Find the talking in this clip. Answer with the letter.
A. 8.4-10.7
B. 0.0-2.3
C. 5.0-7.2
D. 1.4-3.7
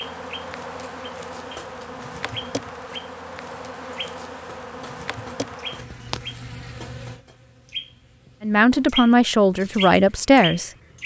A.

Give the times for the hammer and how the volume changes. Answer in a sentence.
The hammer can't be heard in this clip.